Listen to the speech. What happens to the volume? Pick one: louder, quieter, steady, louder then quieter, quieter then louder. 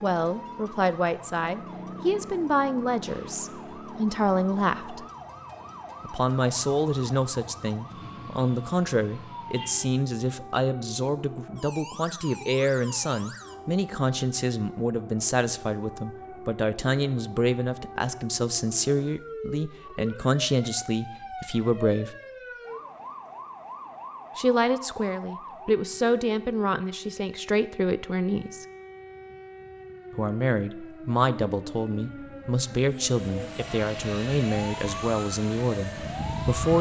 steady.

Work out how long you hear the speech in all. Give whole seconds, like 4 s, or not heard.
32 s.